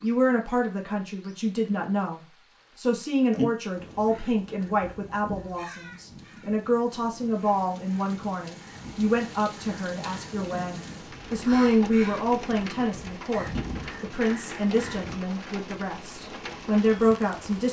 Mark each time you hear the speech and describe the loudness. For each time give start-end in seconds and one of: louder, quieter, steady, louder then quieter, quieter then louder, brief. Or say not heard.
0.0-17.6 steady.